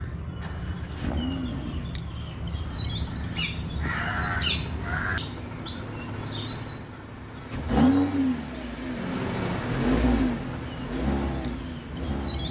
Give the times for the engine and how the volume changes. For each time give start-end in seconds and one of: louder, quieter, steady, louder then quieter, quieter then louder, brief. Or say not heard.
0.2-12.4 louder.